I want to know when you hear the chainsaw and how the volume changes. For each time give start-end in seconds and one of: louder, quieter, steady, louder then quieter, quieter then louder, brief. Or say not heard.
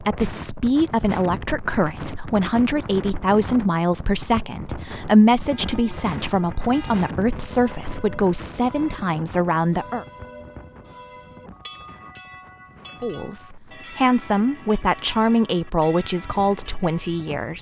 not heard.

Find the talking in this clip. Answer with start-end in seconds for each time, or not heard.
0.0-10.1, 13.0-17.5.